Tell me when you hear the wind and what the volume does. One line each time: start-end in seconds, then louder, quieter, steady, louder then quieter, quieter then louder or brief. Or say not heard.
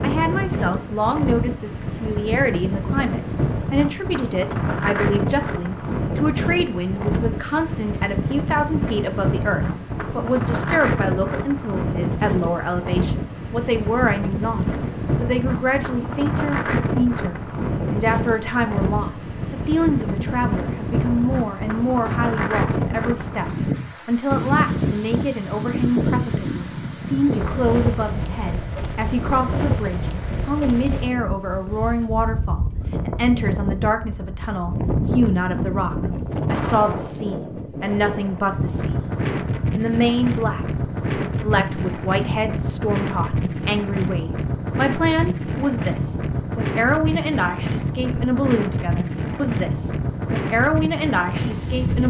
0.0-52.0 steady.